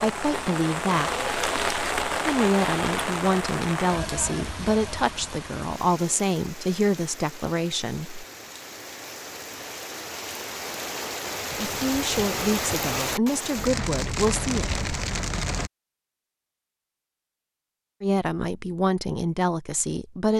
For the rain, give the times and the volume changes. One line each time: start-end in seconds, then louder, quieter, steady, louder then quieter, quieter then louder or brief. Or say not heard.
0.0-15.7 quieter then louder.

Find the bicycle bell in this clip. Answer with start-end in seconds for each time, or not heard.
not heard.